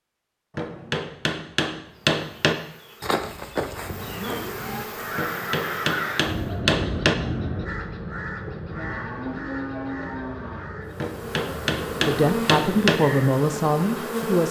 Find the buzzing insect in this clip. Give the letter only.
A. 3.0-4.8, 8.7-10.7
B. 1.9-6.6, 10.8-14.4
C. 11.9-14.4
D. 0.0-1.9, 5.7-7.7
B.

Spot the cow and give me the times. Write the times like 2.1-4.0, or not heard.
3.0-4.8, 8.7-10.7.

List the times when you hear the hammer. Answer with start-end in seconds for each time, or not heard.
0.6-2.5, 5.2-7.2, 10.9-13.0.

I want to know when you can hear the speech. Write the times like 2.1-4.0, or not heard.
11.9-14.4.